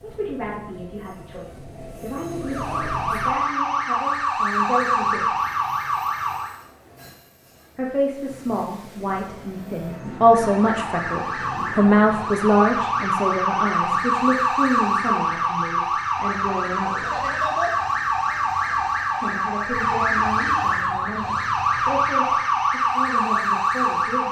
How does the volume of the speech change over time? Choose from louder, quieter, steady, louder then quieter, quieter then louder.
louder then quieter.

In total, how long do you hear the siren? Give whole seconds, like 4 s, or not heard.
18 s.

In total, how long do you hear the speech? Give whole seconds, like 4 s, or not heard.
20 s.